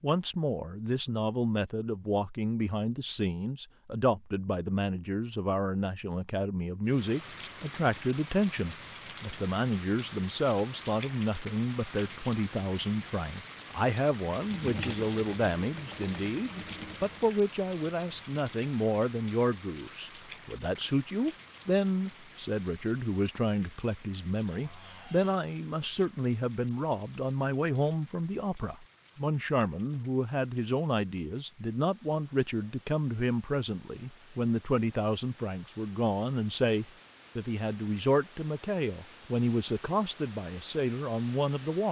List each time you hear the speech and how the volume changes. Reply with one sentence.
The speech can be heard from 0.0 to 41.8 s, at a steady volume.